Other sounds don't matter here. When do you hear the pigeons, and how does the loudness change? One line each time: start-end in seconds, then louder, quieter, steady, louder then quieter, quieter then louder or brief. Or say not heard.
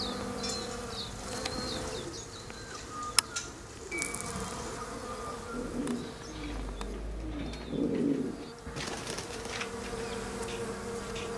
0.0-11.3 louder then quieter.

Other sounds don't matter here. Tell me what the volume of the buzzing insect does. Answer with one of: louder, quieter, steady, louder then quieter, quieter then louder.
quieter then louder.